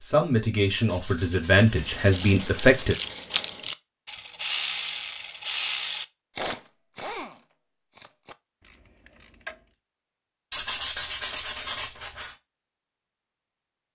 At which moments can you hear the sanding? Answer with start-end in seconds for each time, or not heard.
0.7-3.0, 10.5-12.3.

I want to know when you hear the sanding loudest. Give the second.
11 s.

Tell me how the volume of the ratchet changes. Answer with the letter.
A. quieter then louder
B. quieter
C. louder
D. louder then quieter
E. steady
B.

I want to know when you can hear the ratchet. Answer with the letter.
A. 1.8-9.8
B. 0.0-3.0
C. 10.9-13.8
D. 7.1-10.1
A.